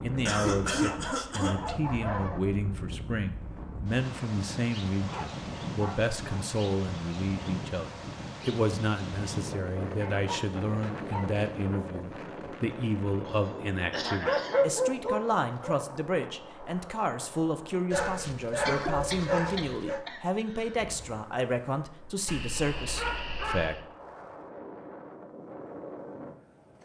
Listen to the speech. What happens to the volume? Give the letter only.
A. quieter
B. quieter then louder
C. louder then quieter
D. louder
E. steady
E.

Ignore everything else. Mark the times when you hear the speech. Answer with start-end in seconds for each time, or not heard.
0.0-23.8.